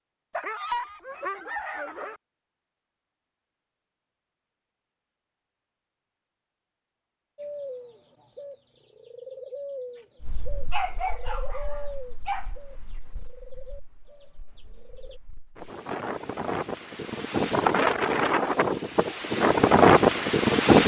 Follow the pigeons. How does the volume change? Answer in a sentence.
The loudness of the pigeons goes up, then down.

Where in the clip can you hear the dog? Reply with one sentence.
You can hear the dog from 0.3 to 2.2 s and from 10.7 to 12.4 s.